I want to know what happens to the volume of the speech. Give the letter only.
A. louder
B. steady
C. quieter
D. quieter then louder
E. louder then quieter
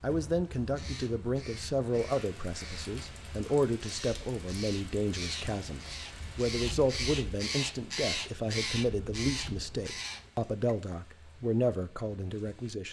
B.